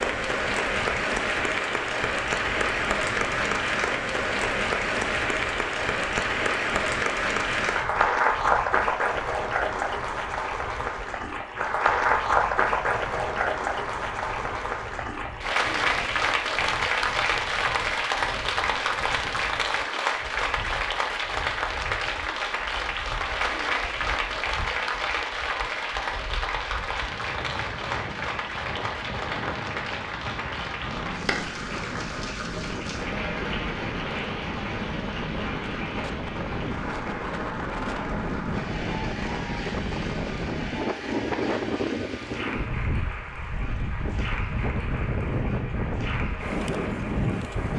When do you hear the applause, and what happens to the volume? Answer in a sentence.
The applause can be heard from 0.0 to 47.7 s, getting quieter.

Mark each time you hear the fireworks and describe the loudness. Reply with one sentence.
You can't hear the fireworks here.